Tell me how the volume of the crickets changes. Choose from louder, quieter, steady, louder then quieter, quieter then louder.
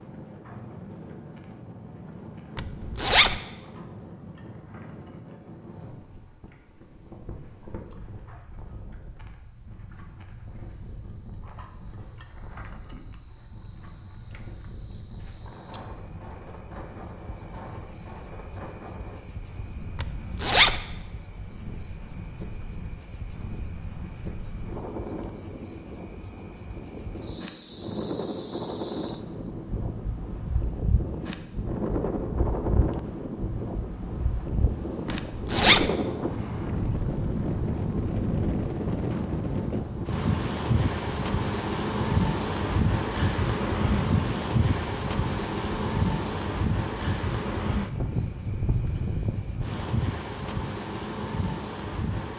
louder.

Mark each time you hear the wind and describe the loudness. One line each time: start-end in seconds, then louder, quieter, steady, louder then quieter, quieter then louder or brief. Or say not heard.
0.0-52.3 louder.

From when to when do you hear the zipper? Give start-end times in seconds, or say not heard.
2.5-3.4, 20.0-20.8, 35.0-35.9.